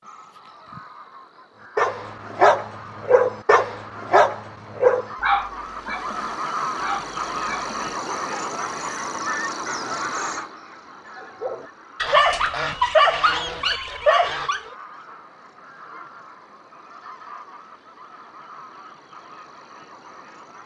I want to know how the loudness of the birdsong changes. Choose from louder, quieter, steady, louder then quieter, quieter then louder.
louder then quieter.